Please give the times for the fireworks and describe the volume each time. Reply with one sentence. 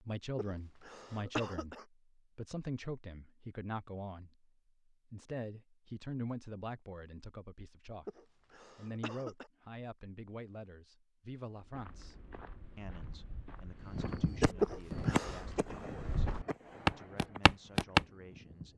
The fireworks can be heard from 13.8 to 18.7 s, getting quieter.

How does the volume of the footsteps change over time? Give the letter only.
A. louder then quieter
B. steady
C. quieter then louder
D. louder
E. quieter
D.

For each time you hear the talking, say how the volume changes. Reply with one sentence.
The talking can be heard briefly from 0.0 to 1.8 s; briefly from 2.4 to 4.5 s; and from 5.1 to 18.7 s, getting quieter.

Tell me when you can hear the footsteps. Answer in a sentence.
The footsteps can be heard from 11.6 to 18.1 s.